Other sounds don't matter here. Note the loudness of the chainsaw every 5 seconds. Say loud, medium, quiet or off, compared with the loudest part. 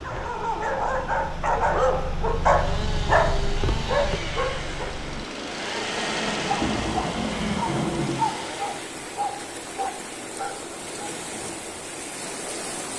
loud, loud, off.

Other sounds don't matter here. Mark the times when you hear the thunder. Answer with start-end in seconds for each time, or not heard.
5.9-8.2.